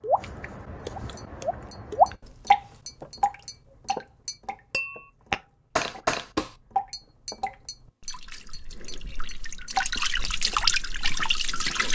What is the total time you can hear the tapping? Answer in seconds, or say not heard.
11 s.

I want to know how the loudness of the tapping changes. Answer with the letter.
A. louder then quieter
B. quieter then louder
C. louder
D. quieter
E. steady
A.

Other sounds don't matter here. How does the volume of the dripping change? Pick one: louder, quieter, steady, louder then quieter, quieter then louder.
quieter then louder.